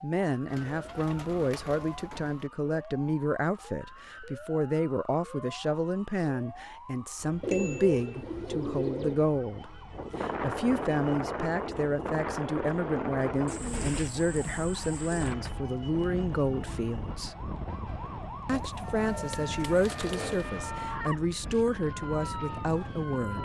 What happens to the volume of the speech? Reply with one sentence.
The volume of the speech stays about the same.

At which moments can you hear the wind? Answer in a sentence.
The wind can be heard from 9.9 to 23.4 s.